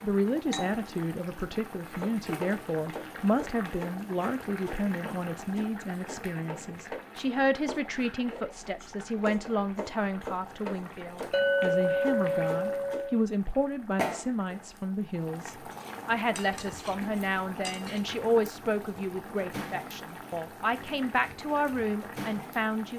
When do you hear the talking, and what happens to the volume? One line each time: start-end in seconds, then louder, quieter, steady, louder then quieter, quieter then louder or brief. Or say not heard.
0.0-22.9 steady.